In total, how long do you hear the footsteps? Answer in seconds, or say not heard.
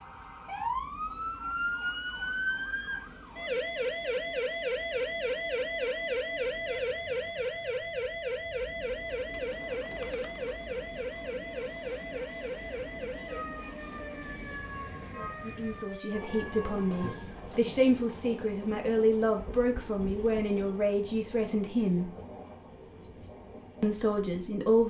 not heard.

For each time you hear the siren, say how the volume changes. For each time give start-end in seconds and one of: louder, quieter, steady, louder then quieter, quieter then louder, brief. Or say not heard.
0.0-17.4 quieter.